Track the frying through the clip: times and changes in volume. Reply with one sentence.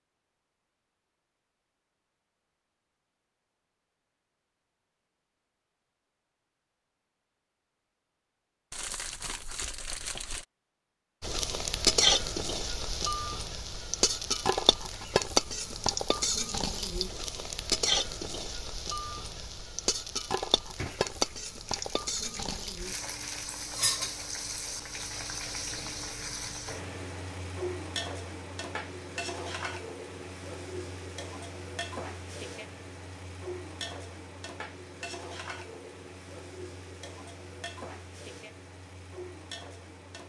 You can hear the frying from 11.2 to 40.2 s, getting quieter.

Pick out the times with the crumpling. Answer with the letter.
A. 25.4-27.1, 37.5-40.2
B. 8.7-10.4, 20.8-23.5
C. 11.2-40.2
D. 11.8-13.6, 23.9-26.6
B.